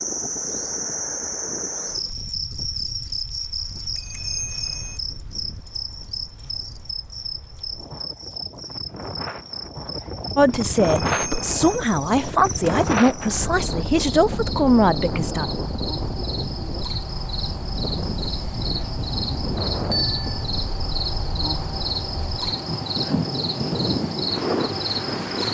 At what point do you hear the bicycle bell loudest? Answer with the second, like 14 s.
20 s.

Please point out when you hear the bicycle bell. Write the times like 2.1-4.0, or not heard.
4.0-5.0, 10.8-11.6, 19.9-20.4.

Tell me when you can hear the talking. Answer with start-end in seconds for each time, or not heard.
10.3-15.4.